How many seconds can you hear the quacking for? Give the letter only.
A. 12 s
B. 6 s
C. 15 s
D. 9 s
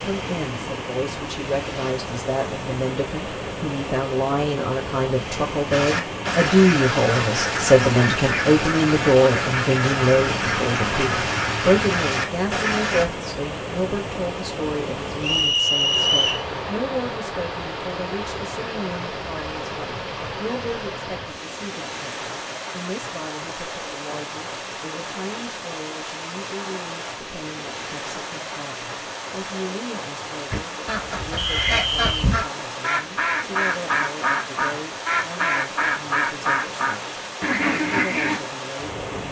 C.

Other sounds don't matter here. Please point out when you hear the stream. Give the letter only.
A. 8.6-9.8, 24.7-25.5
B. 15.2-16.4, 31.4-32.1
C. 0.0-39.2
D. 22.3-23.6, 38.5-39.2
C.